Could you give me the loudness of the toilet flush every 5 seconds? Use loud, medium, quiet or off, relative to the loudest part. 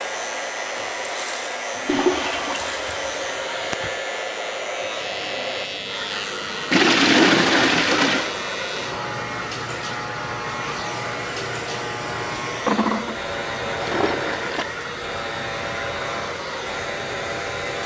medium, loud, medium, off.